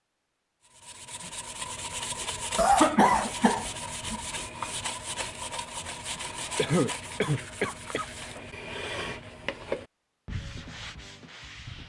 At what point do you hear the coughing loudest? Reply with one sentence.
The loudest moment of the coughing is at 3 seconds.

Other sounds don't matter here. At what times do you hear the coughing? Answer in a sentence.
The coughing can be heard from 2.5 to 4.2 s and from 6.1 to 8.1 s.